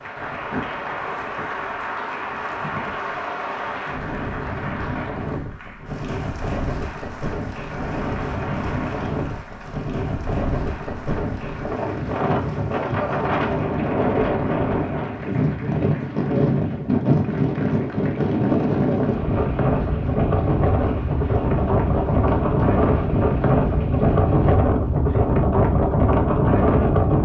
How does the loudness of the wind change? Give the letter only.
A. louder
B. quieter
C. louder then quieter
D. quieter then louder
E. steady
A.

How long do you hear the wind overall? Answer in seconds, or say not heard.
27 s.